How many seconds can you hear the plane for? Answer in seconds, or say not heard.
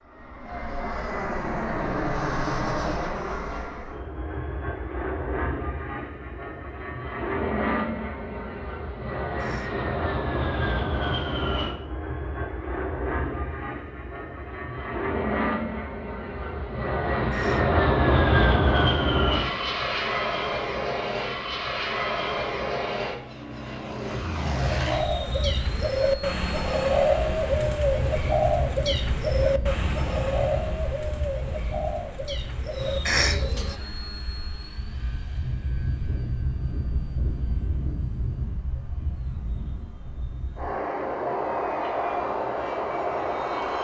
44 s.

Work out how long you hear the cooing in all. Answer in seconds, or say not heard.
9 s.